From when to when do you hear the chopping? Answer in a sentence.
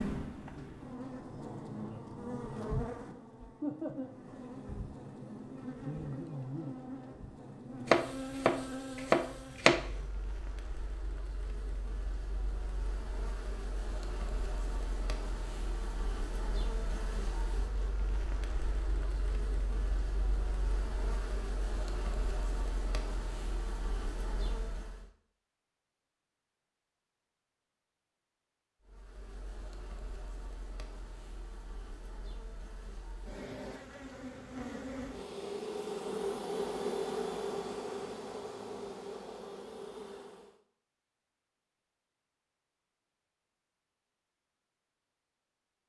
You can hear the chopping from 7.8 to 9.8 s.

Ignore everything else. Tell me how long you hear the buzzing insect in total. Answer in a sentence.
You can hear the buzzing insect for 37 seconds altogether.